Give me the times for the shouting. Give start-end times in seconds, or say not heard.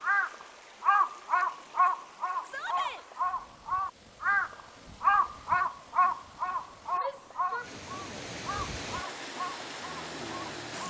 2.5-3.0, 7.0-8.2.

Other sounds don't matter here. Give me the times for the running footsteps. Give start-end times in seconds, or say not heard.
not heard.